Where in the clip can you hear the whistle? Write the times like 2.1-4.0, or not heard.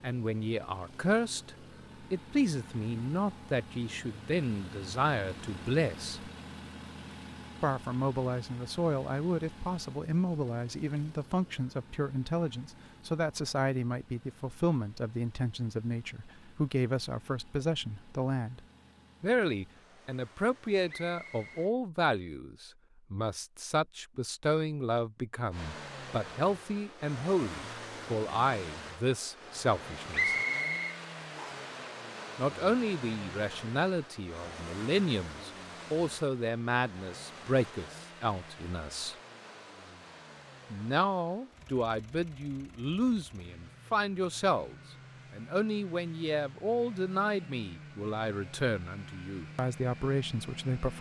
20.9-21.6, 30.1-31.7.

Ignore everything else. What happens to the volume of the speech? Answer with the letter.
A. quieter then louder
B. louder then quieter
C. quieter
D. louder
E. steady
E.